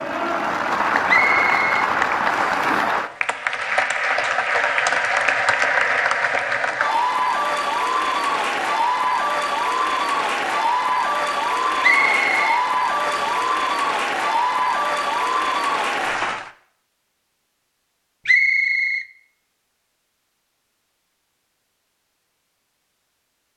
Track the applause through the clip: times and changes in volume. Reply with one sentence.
You can hear the applause from 0.0 to 16.5 s, at a steady volume.